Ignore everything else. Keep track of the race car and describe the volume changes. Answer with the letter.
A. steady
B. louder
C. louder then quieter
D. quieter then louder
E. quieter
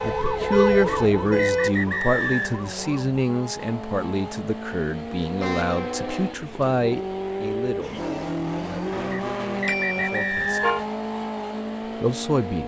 B.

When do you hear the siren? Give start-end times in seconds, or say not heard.
0.0-3.2.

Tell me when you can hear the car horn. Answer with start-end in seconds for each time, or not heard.
0.3-1.9, 5.3-6.3, 9.7-10.8.